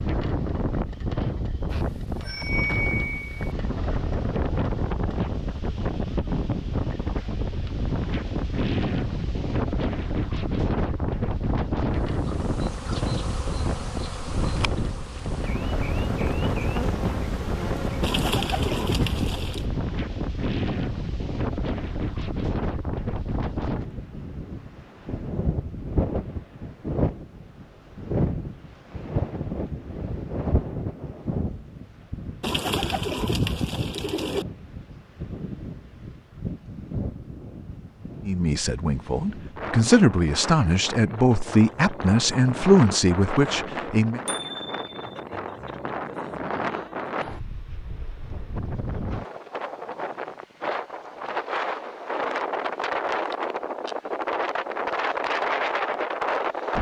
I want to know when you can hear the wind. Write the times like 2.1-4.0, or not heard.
0.0-56.7.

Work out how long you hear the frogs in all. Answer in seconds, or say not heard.
not heard.